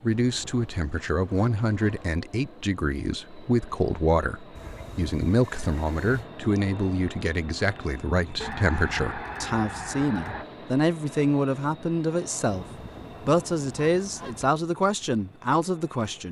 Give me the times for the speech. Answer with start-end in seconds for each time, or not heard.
0.0-16.2.